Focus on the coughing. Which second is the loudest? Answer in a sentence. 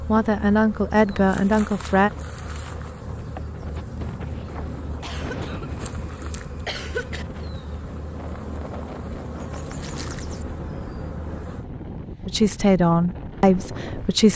The loudest moment of the coughing is at 7 seconds.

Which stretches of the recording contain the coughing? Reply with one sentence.
You can hear the coughing from 5.0 to 7.2 s.